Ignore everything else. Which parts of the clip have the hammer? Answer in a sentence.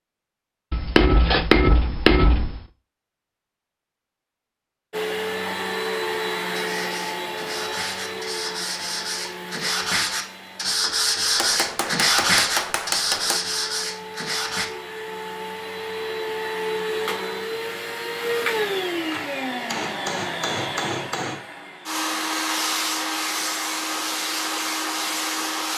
You can hear the hammer from 0.7 to 2.6 s, from 11.3 to 13.4 s and from 18.6 to 21.4 s.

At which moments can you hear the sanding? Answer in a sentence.
The sanding can be heard from 6.5 to 14.7 s.